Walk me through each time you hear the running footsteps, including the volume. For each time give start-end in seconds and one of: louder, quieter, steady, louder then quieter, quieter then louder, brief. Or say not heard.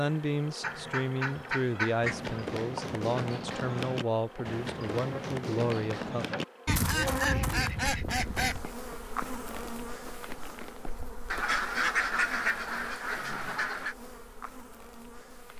2.0-11.2 quieter.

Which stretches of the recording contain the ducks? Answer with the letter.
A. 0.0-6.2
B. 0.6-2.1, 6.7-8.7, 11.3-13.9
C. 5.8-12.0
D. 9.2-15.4
B.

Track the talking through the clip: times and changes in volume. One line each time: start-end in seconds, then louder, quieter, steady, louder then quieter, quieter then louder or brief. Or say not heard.
0.0-6.2 steady.